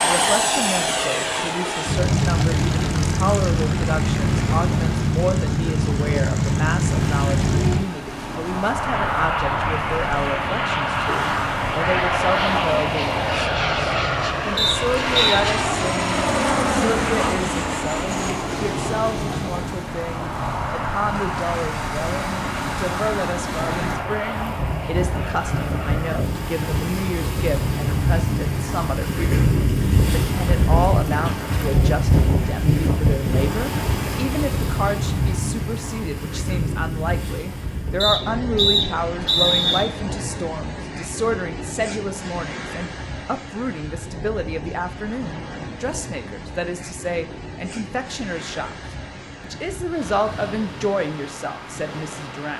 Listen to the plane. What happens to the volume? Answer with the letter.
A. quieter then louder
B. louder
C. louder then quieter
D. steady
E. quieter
E.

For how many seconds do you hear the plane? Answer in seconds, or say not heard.
26 s.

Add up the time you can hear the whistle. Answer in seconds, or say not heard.
3 s.